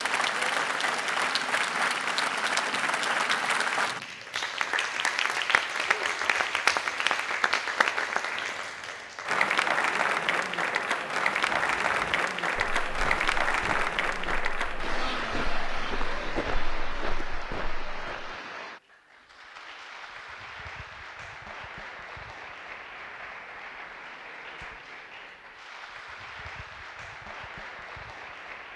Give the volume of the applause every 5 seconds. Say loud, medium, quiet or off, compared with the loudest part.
loud, loud, loud, medium, quiet, quiet.